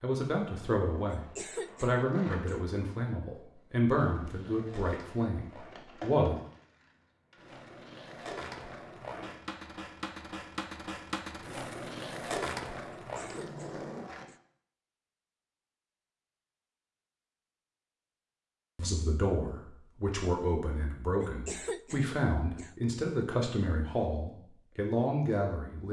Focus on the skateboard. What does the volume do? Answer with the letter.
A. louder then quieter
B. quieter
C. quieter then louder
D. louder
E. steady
D.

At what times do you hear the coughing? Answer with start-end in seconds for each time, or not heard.
1.1-2.6, 12.9-14.4, 21.2-22.8.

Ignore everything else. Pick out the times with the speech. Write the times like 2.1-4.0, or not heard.
0.0-6.4, 18.8-25.8.